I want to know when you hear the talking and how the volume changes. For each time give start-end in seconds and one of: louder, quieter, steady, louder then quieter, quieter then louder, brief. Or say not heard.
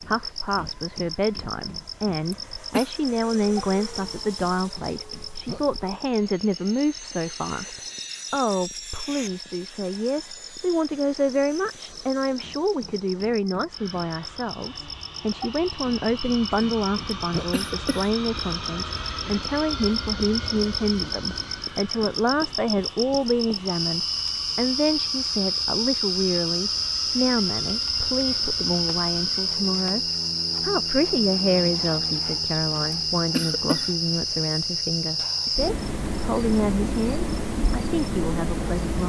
0.0-39.0 steady.